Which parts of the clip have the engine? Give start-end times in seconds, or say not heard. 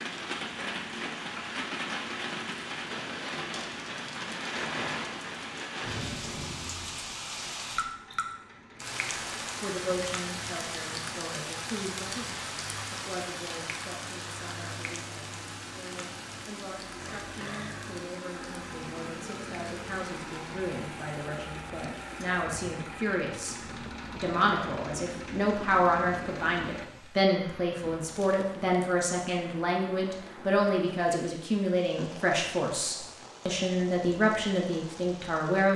0.0-26.9.